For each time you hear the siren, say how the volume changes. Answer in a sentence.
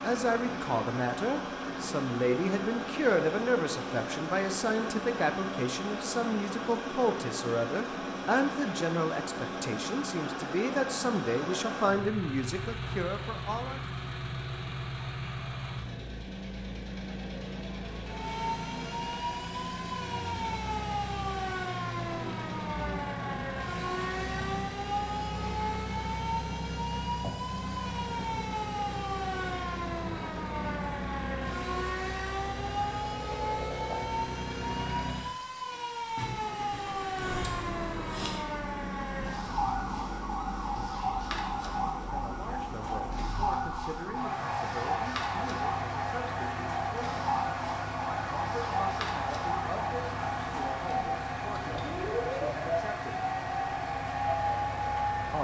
You can hear the siren from 18.1 to 55.3 s, at a steady volume.